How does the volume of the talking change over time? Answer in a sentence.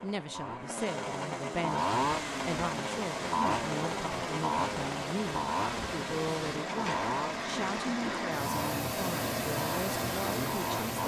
The loudness of the talking stays about the same.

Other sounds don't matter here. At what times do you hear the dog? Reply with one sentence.
You can't hear the dog here.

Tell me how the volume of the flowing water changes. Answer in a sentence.
The volume of the flowing water goes up.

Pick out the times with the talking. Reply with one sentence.
You can hear the talking from 0.0 to 11.0 s.